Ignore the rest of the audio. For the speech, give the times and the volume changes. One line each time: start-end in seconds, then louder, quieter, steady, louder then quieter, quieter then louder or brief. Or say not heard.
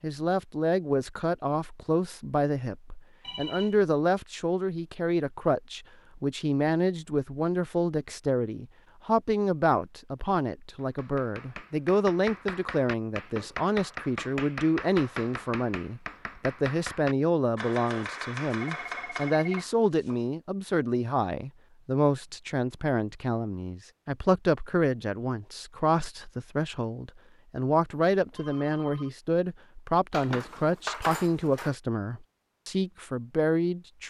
0.0-34.0 steady.